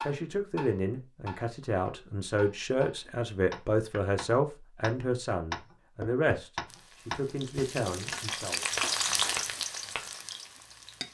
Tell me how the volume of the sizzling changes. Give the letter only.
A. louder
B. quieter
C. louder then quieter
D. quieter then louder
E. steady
C.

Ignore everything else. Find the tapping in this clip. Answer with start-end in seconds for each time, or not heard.
0.0-10.1.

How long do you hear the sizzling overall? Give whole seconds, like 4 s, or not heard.
4 s.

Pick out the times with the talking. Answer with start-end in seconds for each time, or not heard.
0.1-8.6.